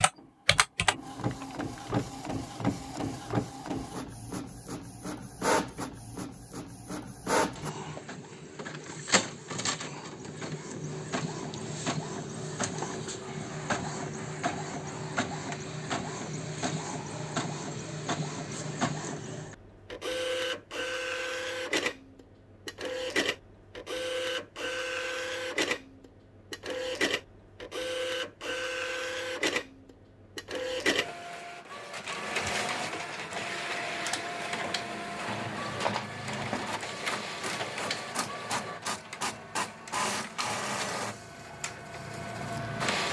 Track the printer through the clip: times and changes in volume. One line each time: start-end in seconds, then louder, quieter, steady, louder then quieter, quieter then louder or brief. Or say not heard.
0.0-43.0 steady.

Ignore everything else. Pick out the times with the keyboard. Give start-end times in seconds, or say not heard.
0.0-2.0.